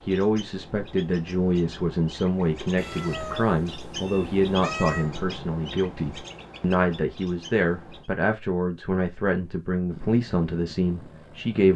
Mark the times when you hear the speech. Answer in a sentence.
The speech can be heard from 0.1 to 11.7 s.